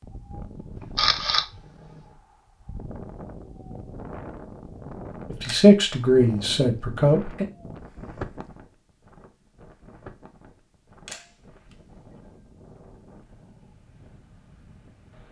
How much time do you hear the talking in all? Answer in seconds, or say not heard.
2 s.